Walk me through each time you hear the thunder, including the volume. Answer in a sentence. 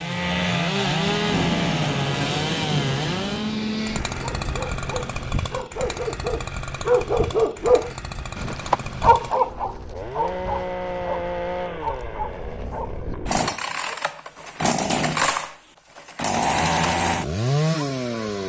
The thunder can be heard from 0.9 to 5.3 s, getting quieter.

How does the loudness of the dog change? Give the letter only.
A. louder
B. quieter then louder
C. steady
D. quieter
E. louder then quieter
E.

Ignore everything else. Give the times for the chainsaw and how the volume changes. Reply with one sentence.
The chainsaw can be heard from 0.0 to 18.4 s, getting quieter then louder.